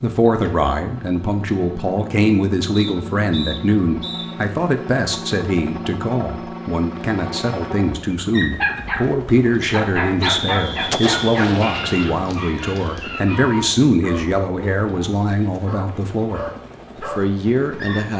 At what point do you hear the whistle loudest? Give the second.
10 s.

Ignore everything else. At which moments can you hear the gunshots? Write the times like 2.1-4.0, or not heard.
10.7-12.3.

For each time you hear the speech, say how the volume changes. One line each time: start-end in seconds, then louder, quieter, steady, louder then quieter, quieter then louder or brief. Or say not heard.
0.0-18.1 steady.